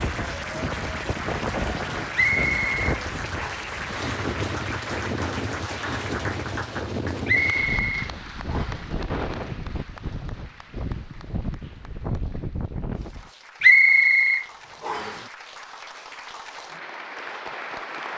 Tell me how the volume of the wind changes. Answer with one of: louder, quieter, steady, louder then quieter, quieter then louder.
steady.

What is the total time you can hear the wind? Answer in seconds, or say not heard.
13 s.